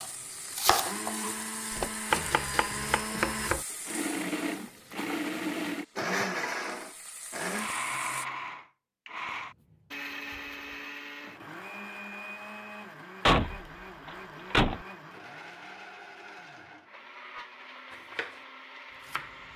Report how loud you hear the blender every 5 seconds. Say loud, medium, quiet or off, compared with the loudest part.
loud, loud, medium, quiet.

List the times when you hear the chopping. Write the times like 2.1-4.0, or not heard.
0.0-3.6, 18.1-19.5.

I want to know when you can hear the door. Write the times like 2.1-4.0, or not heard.
1.8-2.2, 13.2-14.8.